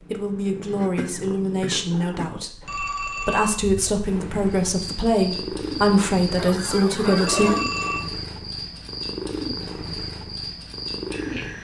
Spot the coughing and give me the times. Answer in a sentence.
The coughing can be heard from 0.7 to 2.4 s and from 6.3 to 7.7 s.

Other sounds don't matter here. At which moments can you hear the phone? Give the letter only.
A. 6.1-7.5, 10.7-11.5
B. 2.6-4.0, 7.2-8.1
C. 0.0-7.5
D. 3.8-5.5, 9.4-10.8
B.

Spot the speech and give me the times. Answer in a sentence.
You can hear the speech from 0.0 to 7.5 s.